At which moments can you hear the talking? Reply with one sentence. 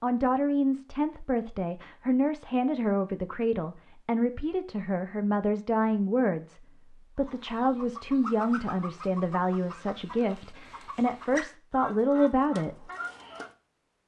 You can hear the talking from 0.0 to 12.9 s.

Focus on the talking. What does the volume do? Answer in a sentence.
The loudness of the talking stays about the same.